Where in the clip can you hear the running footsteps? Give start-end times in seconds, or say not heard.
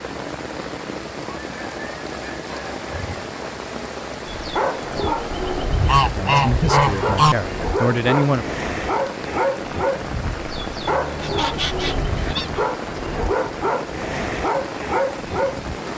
not heard.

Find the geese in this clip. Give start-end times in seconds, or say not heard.
1.5-3.3, 5.7-7.3, 10.8-12.7.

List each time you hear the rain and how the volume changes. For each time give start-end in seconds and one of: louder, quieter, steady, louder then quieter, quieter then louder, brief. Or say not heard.
0.0-15.9 steady.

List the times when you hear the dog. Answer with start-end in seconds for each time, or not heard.
4.2-15.8.